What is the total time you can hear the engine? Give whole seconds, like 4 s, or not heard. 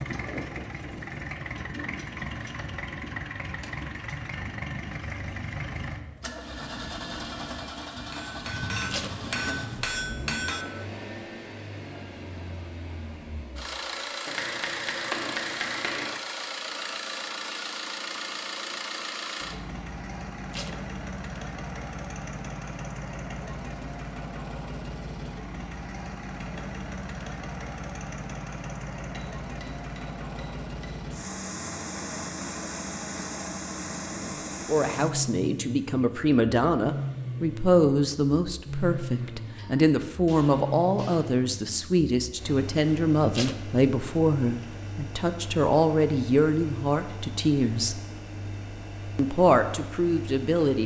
51 s.